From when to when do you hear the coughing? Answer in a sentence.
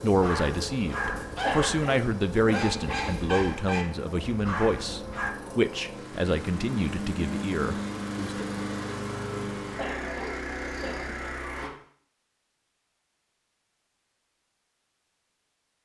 The coughing can be heard from 1.4 to 3.1 s and from 9.8 to 11.3 s.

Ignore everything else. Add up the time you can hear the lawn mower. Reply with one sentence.
You can hear the lawn mower for 12 seconds altogether.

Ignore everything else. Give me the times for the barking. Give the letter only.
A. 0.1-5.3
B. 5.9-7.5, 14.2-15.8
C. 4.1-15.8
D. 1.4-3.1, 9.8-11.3
A.